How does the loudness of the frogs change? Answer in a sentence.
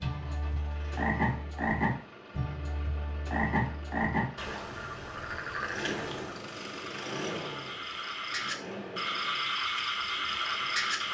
The volume of the frogs goes down, then up.